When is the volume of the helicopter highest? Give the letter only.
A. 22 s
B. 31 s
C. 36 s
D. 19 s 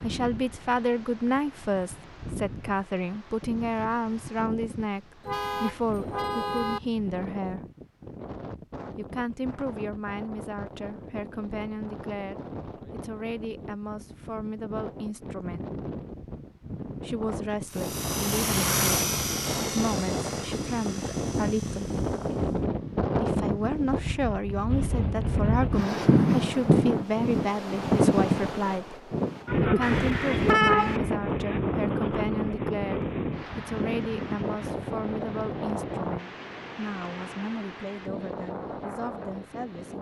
D.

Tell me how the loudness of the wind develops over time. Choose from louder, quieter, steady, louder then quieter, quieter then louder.
louder then quieter.